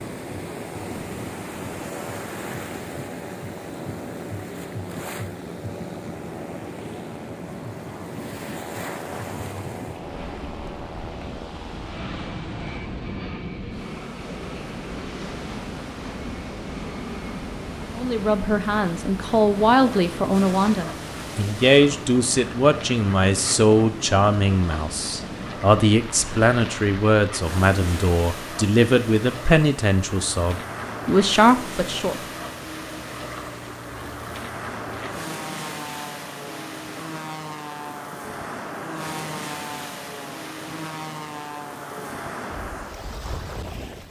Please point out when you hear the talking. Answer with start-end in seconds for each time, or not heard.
17.9-32.2.